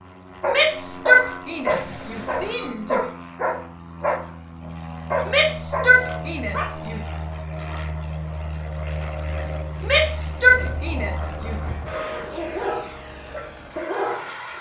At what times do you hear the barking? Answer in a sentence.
The barking can be heard from 0.4 to 6.8 s and from 11.4 to 14.4 s.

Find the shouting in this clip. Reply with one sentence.
You can hear the shouting from 0.5 to 3.1 s, from 5.2 to 7.0 s and from 9.8 to 11.6 s.